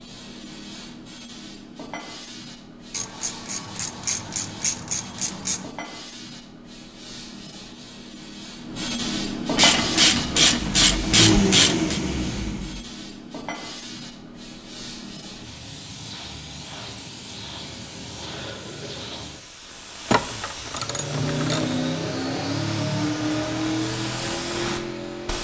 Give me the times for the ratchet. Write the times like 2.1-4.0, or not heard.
2.9-5.7, 9.6-12.0, 20.1-21.8.